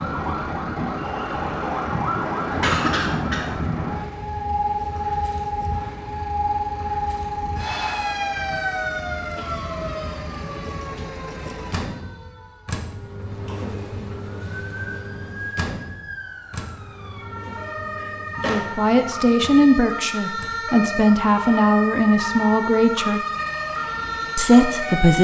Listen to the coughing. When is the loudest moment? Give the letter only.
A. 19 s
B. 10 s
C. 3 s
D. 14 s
C.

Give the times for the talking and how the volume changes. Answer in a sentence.
You can hear the talking from 18.4 to 23.2 s, at a steady volume; and briefly from 24.4 to 25.1 s.